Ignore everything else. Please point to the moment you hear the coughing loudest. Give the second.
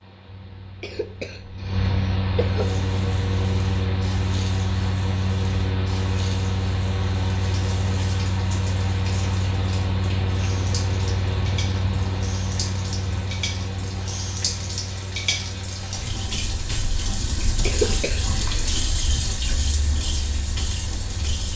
18 s.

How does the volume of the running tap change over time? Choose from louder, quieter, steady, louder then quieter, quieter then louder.
louder.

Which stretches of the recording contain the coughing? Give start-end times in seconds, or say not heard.
0.8-2.6, 17.6-18.8.